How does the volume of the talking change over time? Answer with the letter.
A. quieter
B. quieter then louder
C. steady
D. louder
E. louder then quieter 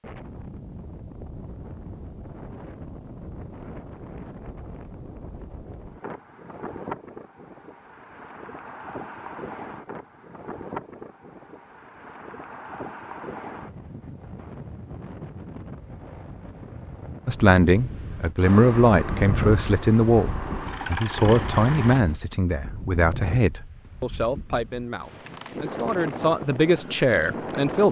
B.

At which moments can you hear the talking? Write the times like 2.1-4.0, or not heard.
17.2-27.8.